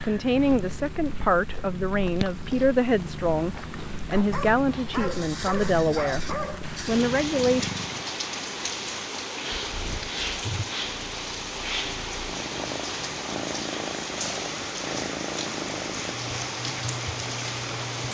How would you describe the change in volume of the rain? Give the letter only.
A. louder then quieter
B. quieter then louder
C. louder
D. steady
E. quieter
C.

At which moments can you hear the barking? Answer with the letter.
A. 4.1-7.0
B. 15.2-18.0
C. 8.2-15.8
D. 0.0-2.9
A.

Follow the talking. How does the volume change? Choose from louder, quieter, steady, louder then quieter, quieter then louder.
steady.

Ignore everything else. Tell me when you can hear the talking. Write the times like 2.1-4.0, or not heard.
0.0-7.7.